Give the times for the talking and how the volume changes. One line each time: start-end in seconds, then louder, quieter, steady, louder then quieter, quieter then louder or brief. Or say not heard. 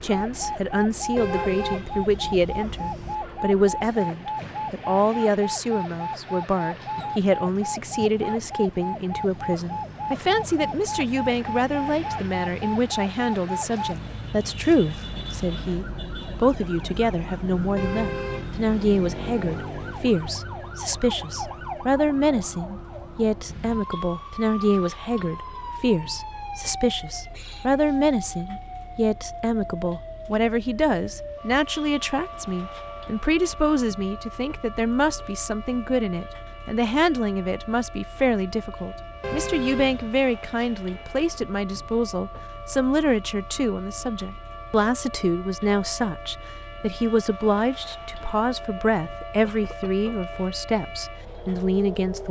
0.0-52.2 steady.